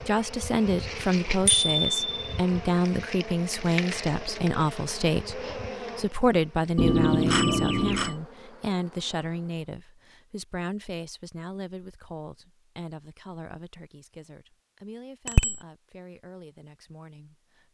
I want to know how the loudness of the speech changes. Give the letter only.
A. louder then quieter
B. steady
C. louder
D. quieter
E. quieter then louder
D.